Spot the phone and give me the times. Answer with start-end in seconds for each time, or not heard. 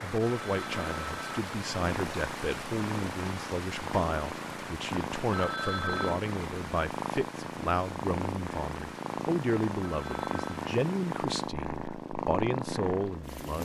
0.2-1.4, 5.3-6.2, 9.8-10.7.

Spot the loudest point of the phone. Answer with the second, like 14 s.
6 s.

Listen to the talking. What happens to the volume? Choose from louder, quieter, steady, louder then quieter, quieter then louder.
steady.